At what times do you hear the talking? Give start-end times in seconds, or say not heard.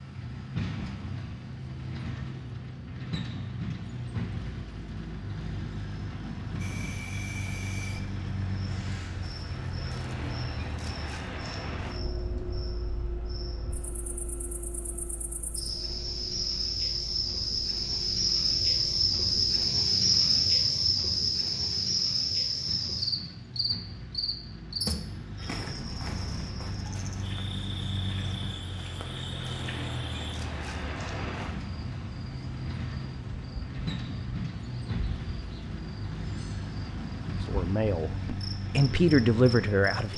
37.5-40.1.